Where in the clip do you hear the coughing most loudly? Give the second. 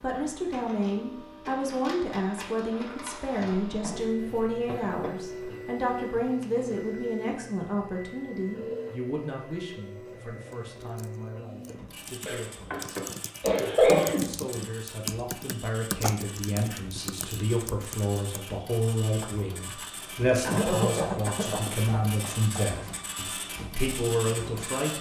14 s.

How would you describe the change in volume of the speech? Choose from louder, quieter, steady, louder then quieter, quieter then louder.
quieter then louder.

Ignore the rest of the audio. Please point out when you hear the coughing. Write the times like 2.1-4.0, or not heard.
3.5-5.5, 12.2-14.2, 20.4-22.8.